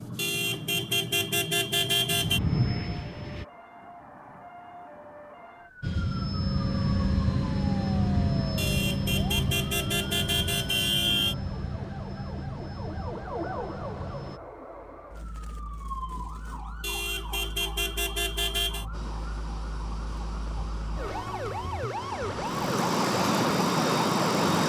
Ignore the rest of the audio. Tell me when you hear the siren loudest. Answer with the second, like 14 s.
24 s.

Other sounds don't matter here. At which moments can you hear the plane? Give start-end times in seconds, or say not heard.
0.0-3.5, 5.8-14.4, 18.9-24.6.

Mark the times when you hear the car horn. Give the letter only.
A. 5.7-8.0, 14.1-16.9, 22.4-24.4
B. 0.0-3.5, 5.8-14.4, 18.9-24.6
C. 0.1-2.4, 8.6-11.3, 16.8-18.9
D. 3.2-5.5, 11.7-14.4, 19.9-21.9
C.